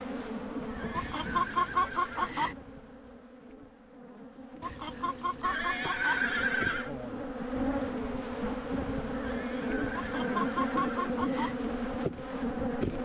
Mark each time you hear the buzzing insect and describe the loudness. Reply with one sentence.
You can hear the buzzing insect from 0.0 to 13.0 s, getting quieter then louder.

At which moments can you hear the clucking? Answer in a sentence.
You can hear the clucking from 0.9 to 2.5 s, from 4.6 to 6.2 s and from 9.9 to 11.6 s.